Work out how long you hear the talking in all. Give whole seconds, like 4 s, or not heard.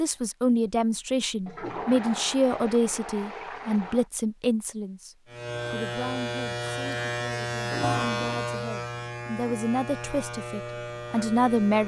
12 s.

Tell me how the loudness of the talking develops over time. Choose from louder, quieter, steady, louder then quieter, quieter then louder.
quieter then louder.